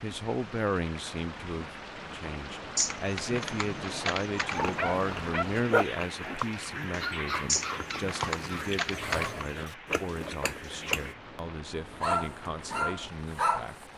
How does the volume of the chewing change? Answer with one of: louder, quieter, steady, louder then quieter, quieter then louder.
quieter then louder.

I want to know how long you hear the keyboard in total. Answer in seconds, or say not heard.
4 s.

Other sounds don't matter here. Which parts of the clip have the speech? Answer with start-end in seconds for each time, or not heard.
0.0-13.8.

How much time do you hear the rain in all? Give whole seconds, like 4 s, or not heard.
14 s.